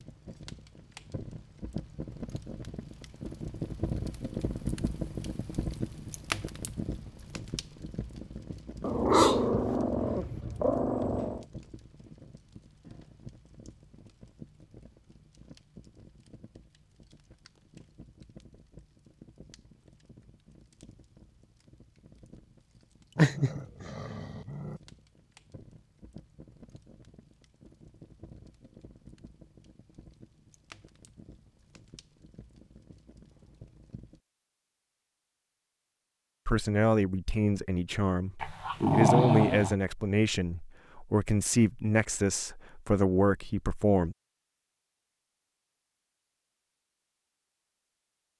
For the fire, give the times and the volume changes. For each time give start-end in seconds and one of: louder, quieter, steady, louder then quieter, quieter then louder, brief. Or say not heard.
0.0-34.2 quieter.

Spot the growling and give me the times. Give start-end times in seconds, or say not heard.
8.8-11.4, 23.1-24.8, 38.4-39.8.